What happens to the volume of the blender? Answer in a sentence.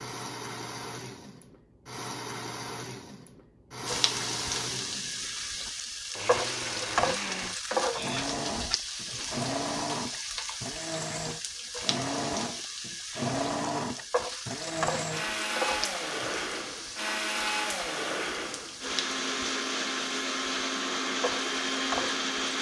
The volume of the blender goes up.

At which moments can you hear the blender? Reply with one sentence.
You can hear the blender from 0.0 to 22.5 s.